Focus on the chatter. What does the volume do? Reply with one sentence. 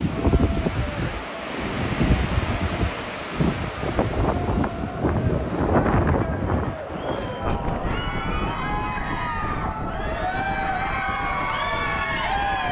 The loudness of the chatter goes up.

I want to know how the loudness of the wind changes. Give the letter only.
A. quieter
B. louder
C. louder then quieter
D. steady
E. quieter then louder
A.